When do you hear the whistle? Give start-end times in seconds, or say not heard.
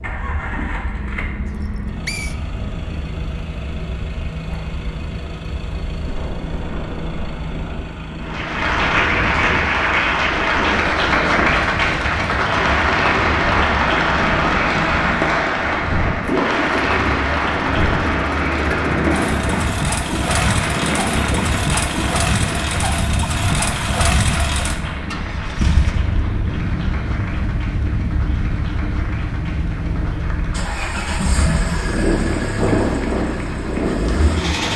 1.6-2.4.